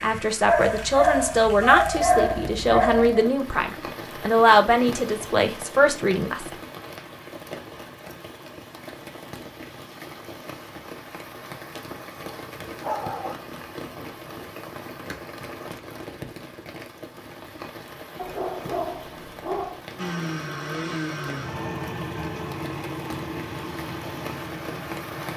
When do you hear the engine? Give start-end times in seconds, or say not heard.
19.9-25.3.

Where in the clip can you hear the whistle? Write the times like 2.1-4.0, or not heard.
not heard.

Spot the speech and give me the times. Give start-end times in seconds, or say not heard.
0.0-6.5.